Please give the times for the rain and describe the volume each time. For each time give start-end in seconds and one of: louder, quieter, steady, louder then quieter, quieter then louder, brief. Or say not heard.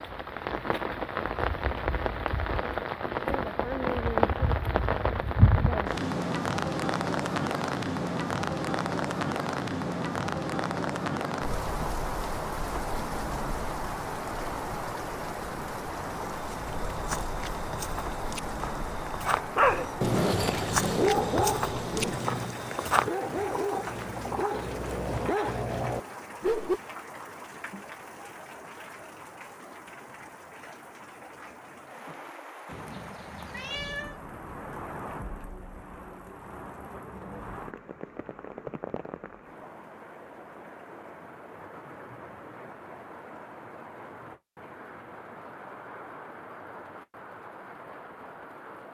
0.0-48.8 quieter.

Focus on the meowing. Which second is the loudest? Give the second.
34 s.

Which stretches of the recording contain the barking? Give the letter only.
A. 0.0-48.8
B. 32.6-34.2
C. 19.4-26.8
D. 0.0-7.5
C.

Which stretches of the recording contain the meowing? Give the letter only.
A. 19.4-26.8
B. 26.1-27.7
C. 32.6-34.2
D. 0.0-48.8
C.